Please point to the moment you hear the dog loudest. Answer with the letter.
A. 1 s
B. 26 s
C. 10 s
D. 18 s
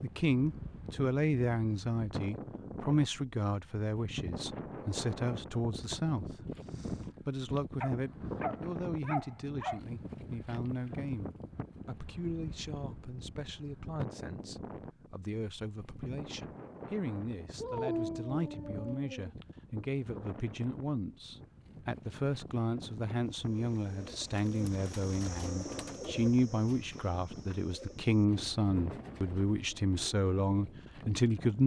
D.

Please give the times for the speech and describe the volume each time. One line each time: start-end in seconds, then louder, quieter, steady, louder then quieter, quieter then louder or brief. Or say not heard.
0.0-31.6 quieter then louder.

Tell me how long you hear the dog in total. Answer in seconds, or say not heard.
4 s.